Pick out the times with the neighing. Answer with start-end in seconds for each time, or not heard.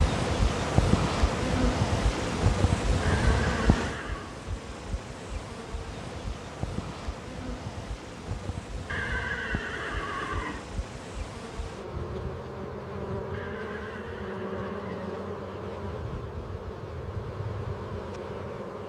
3.0-4.3, 8.8-10.7, 13.3-15.2.